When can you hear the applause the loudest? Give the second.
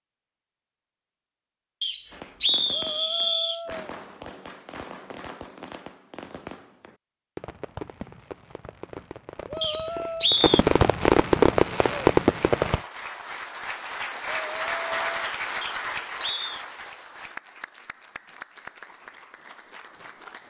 15 s.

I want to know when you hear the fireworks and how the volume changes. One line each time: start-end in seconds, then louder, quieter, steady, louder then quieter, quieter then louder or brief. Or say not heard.
2.1-12.8 louder.